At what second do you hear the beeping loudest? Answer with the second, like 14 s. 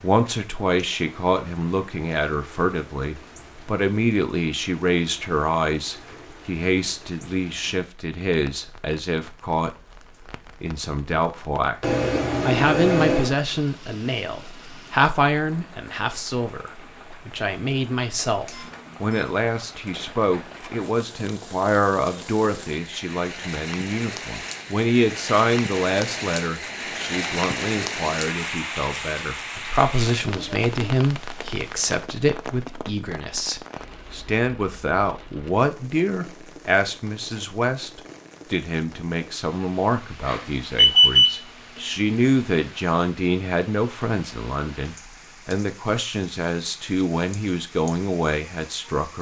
41 s.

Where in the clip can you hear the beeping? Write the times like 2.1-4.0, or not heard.
11.8-13.3, 18.4-19.2, 40.2-41.4.